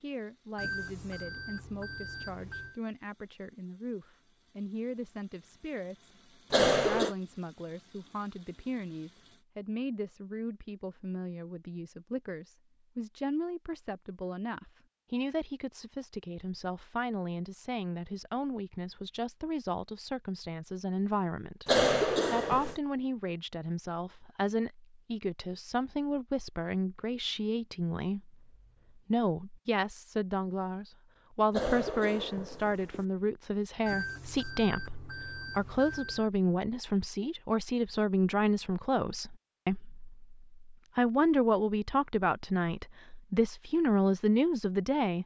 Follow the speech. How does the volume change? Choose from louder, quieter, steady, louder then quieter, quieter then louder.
louder.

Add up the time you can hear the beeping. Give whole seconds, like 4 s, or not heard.
5 s.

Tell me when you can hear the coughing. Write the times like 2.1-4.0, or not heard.
6.5-7.2, 21.6-22.8, 31.5-33.0.